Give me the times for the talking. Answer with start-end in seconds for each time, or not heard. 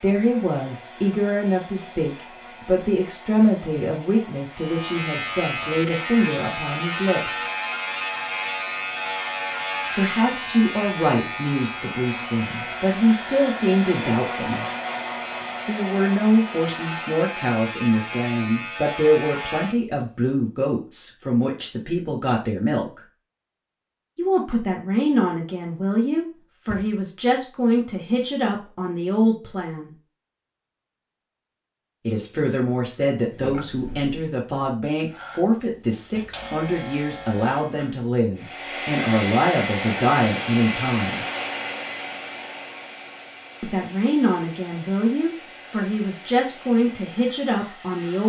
0.0-7.4, 9.9-14.7, 15.7-23.0, 24.1-29.9, 32.0-41.2, 43.6-48.2.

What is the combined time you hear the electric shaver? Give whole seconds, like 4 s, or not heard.
19 s.